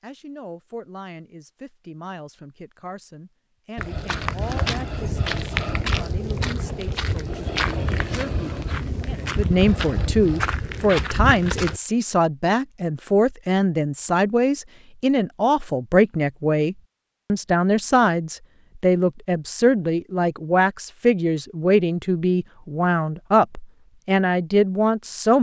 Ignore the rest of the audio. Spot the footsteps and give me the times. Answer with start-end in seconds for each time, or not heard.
3.8-11.8.